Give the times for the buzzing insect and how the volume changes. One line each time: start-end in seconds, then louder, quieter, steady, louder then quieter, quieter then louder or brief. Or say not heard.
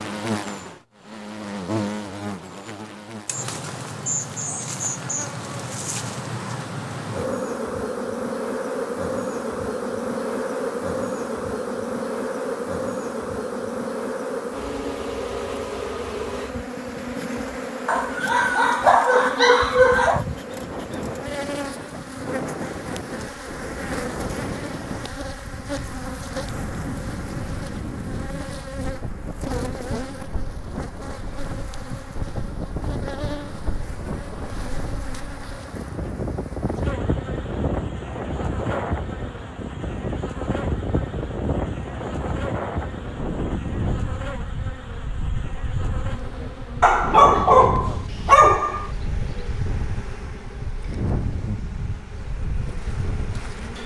0.0-53.8 quieter.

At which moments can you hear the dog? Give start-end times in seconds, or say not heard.
17.9-20.2, 46.8-48.9.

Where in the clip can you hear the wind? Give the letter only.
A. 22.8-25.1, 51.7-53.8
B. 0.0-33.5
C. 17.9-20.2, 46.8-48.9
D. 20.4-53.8
D.